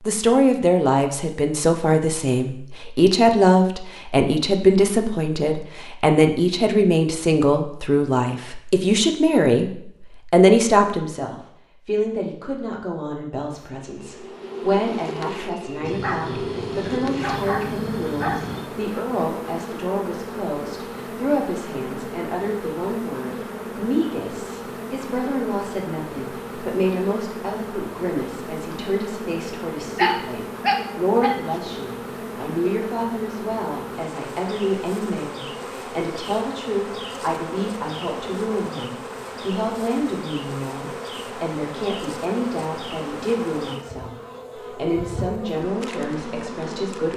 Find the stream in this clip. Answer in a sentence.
You can't hear the stream here.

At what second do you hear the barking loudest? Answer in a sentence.
The loudest moment of the barking is at 30 seconds.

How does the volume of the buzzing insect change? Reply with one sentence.
The loudness of the buzzing insect stays about the same.